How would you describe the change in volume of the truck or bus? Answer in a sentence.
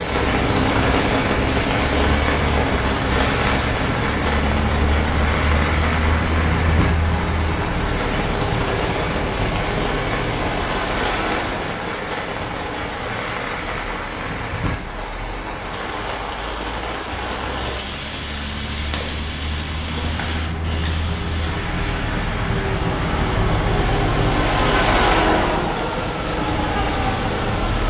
The loudness of the truck or bus goes down, then up.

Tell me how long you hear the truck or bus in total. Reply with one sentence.
You can hear the truck or bus for 28 seconds altogether.